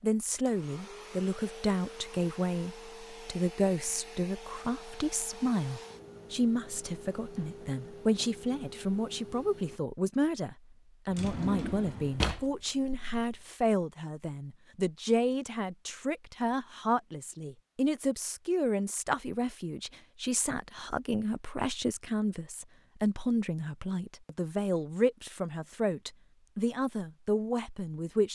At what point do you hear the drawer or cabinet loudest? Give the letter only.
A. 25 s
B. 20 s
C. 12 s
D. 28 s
C.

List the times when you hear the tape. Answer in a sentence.
You can't hear the tape here.